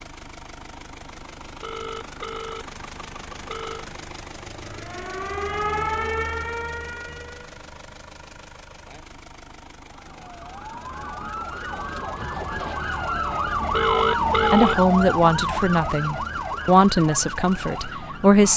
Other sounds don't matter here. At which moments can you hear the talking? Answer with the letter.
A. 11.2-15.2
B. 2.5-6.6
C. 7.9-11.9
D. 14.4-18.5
D.